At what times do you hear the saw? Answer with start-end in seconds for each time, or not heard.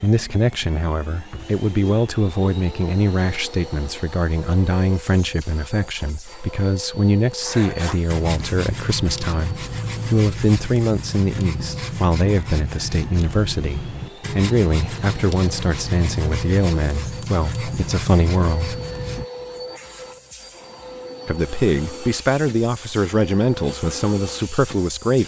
7.4-19.2.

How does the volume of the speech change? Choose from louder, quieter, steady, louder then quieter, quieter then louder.
steady.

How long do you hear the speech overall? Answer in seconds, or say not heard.
23 s.